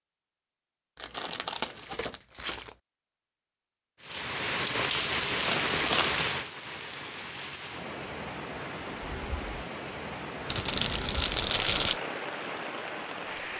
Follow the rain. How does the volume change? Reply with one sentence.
The volume of the rain goes down.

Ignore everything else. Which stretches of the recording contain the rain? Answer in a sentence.
The rain can be heard from 4.0 to 13.5 s.